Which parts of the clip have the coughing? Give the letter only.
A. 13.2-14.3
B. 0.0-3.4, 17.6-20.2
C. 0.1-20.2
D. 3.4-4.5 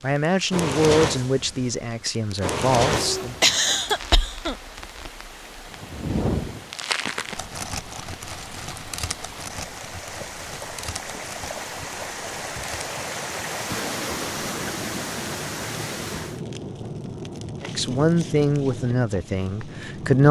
D.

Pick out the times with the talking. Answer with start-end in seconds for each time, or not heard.
0.0-3.4, 17.6-20.2.